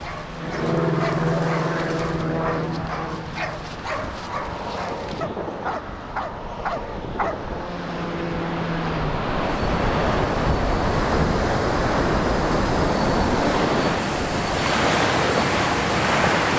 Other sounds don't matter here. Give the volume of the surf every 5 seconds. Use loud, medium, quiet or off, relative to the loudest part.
quiet, medium, loud, loud.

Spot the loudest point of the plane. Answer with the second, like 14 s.
1 s.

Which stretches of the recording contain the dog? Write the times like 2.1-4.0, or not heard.
0.0-7.4.